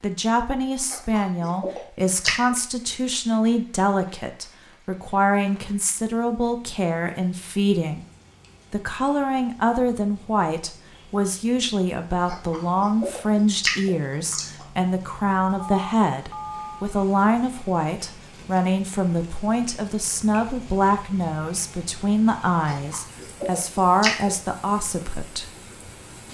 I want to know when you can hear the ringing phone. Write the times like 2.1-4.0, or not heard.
15.6-16.9.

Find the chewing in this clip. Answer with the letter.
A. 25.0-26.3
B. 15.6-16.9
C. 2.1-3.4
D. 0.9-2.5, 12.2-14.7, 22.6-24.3
D.